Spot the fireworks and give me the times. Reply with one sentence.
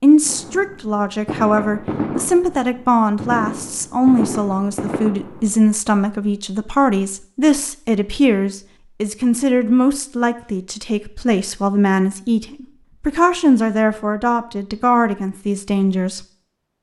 You can hear the fireworks from 0.2 to 5.7 s.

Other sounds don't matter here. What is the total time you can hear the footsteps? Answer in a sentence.
The footsteps can't be heard in this clip.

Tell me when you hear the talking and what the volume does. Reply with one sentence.
You can hear the talking from 0.0 to 16.2 s, at a steady volume.